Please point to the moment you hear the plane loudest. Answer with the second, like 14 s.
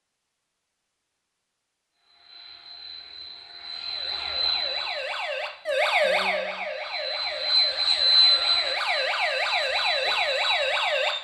8 s.